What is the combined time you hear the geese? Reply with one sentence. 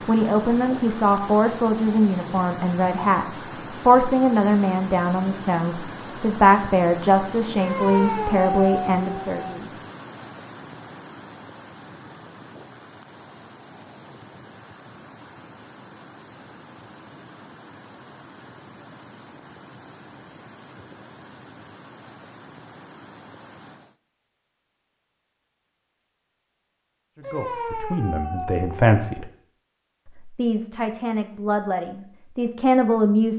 The geese can't be heard in this clip.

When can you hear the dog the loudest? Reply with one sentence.
The volume of the dog peaks at 8 seconds.